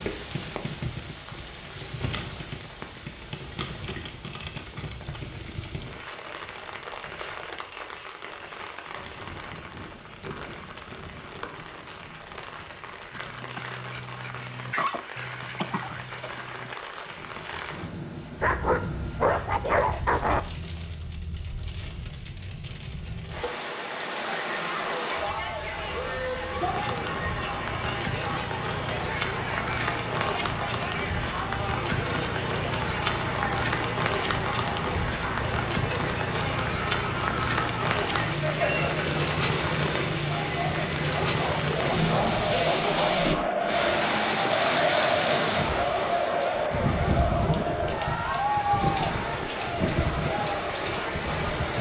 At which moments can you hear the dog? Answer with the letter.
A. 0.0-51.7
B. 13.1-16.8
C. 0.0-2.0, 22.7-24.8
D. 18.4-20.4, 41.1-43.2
D.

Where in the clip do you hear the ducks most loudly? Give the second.
15 s.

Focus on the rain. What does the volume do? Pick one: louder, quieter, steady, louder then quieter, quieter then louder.
louder.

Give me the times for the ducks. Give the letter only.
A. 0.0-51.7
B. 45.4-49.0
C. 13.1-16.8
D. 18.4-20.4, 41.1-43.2
C.